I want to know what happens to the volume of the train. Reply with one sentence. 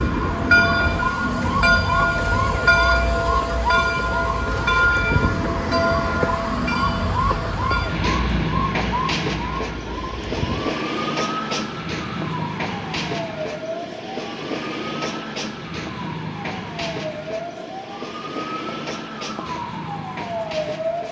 The volume of the train goes down.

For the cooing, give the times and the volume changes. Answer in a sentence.
You can't hear the cooing here.